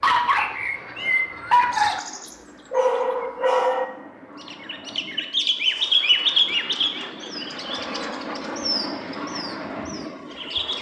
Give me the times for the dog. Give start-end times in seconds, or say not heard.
0.0-3.9.